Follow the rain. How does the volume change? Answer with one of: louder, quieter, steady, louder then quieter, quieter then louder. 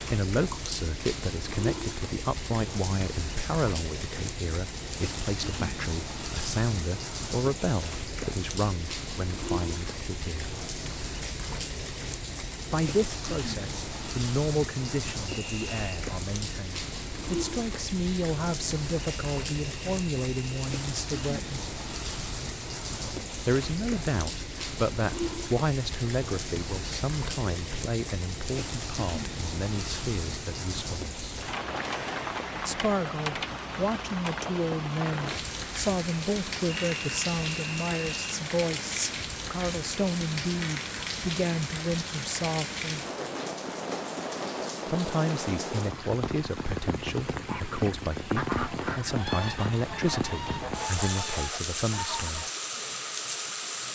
steady.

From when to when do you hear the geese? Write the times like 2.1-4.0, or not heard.
47.3-52.5.